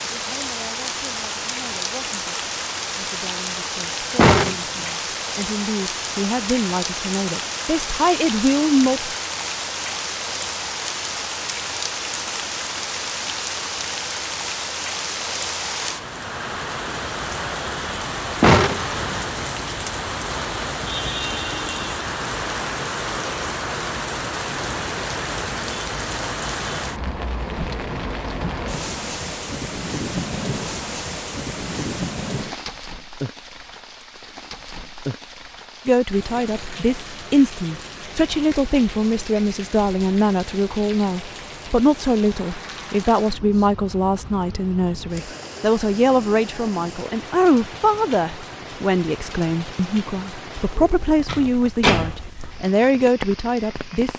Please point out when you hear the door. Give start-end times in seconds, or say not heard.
4.2-4.8, 18.4-19.2, 50.8-52.2.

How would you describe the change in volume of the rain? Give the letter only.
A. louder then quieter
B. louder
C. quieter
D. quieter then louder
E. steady
C.